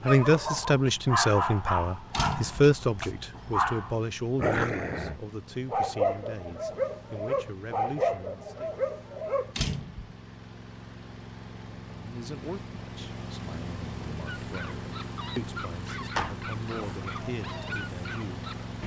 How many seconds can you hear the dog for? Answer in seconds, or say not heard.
14 s.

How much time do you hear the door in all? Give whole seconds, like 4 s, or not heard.
2 s.